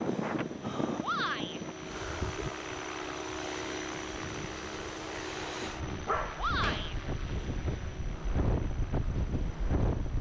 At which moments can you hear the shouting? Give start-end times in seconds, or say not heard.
1.0-1.6, 6.3-7.0.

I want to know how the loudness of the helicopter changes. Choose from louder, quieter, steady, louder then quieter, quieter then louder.
louder then quieter.